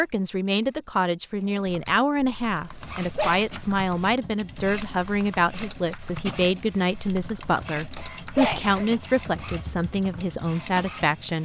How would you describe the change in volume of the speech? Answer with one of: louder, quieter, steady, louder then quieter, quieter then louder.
steady.